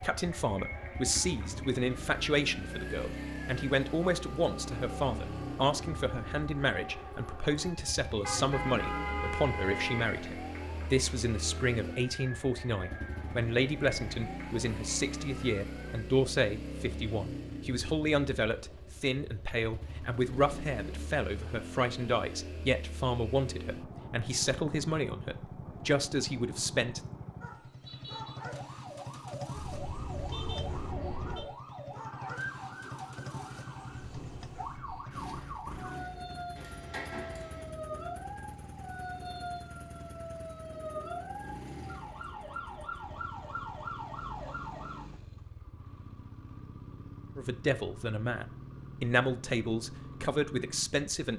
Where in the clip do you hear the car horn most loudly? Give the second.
9 s.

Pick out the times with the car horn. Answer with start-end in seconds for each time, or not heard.
8.2-10.1, 29.6-31.5, 36.5-37.7.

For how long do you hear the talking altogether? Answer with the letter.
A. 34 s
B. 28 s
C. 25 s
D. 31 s
D.